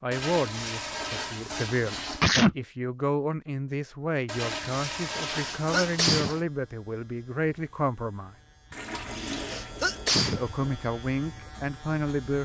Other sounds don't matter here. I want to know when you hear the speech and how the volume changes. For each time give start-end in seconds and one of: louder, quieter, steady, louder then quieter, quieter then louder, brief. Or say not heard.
0.0-8.3 steady
10.3-12.3 brief.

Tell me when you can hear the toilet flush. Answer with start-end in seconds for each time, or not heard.
0.1-2.2, 4.2-6.5, 8.7-10.8.